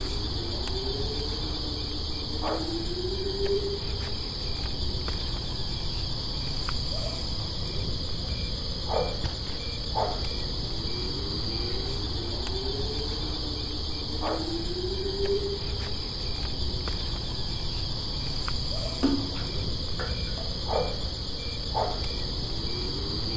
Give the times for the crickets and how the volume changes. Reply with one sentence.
You can hear the crickets from 0.0 to 23.3 s, at a steady volume.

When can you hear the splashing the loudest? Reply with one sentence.
The loudest moment of the splashing is at 19 seconds.